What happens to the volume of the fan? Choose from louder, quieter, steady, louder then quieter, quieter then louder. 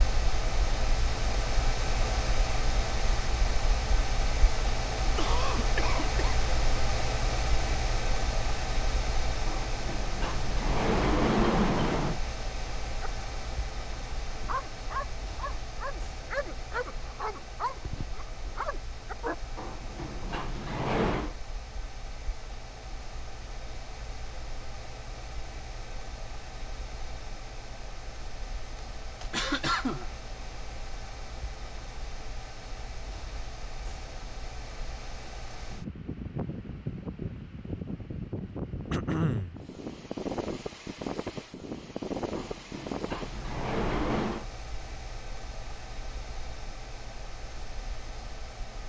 quieter then louder.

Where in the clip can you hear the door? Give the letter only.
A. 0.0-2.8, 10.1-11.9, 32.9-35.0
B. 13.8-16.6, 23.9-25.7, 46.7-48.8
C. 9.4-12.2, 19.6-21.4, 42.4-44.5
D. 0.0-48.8
C.